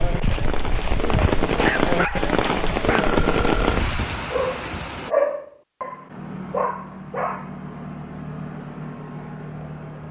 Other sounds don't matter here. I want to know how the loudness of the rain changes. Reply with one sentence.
The loudness of the rain goes up, then down.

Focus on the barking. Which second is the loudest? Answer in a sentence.
The volume of the barking peaks at 5 seconds.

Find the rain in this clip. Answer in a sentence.
You can hear the rain from 0.0 to 5.2 s.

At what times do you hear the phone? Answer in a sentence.
The phone can be heard from 3.0 to 3.8 s.